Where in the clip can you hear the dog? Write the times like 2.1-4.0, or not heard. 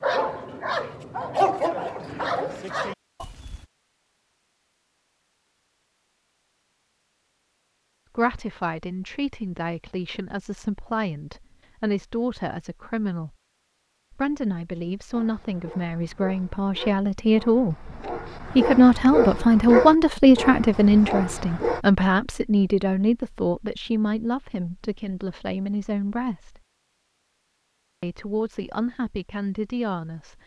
0.0-3.6, 15.1-21.8.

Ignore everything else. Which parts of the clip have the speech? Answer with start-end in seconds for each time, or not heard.
8.2-13.3, 14.1-26.6, 28.0-30.4.